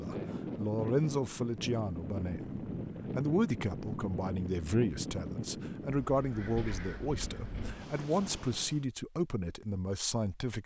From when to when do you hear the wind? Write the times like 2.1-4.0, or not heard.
0.0-8.8.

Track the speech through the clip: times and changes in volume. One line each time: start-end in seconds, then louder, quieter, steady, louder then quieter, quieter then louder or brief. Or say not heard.
0.0-10.6 steady.